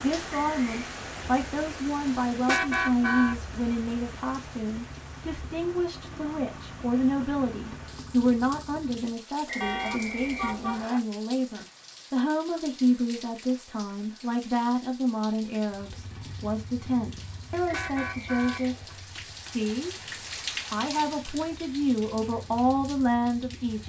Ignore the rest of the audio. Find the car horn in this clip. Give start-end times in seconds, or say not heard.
2.1-3.4, 9.6-10.8, 17.2-18.9.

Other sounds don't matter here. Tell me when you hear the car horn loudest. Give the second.
3 s.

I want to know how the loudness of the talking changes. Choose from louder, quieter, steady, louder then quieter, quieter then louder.
steady.